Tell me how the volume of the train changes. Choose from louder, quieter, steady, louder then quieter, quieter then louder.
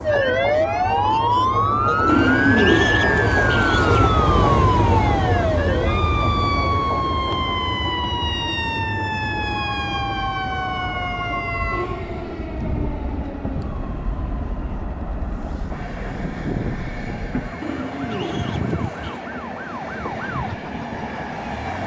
quieter.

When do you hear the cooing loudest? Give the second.
3 s.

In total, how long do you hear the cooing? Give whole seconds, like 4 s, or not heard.
4 s.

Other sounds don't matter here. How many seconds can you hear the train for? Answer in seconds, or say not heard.
22 s.